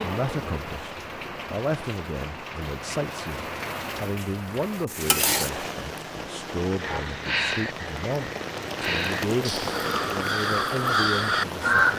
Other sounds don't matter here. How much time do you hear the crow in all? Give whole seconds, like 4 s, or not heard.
5 s.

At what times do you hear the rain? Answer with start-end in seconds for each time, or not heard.
0.0-11.9.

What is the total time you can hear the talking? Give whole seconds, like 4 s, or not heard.
12 s.